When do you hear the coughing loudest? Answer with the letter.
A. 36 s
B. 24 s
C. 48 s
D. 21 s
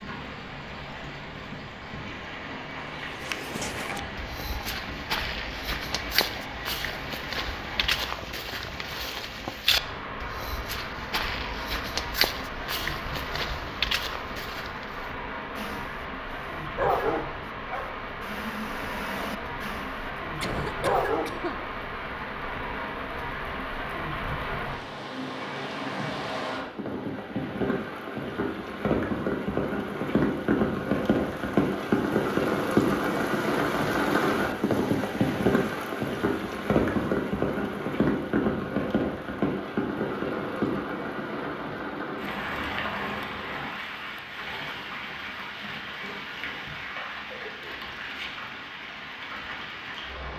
D.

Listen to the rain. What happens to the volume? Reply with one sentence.
The volume of the rain goes up, then down.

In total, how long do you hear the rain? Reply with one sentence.
The rain can be heard for 50 seconds in total.